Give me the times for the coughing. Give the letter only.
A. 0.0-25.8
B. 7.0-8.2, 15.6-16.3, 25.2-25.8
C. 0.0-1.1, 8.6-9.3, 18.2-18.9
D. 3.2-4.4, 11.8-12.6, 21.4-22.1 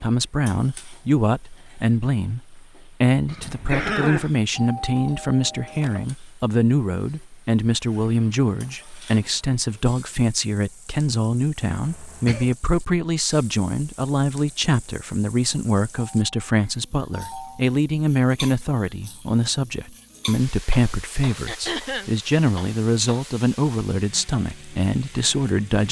D.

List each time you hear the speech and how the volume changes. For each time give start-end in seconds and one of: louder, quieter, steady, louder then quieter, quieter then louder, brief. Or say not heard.
0.0-25.8 steady.